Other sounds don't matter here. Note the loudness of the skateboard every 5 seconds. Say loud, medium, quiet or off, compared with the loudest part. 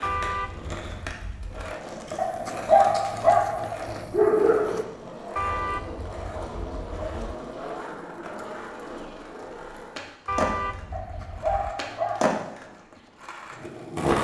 medium, medium, loud.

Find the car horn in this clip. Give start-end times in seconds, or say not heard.
0.0-1.8, 5.3-7.3, 10.2-11.8.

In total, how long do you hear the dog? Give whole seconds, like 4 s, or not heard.
4 s.